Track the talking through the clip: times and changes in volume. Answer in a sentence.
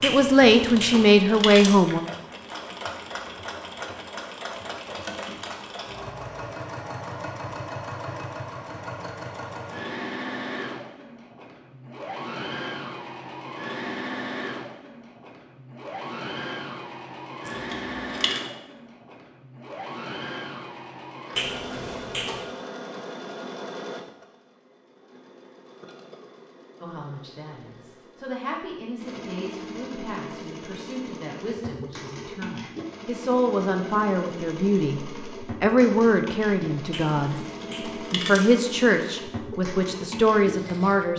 The talking can be heard briefly from 0.0 to 2.0 s; and from 26.8 to 41.1 s, getting louder.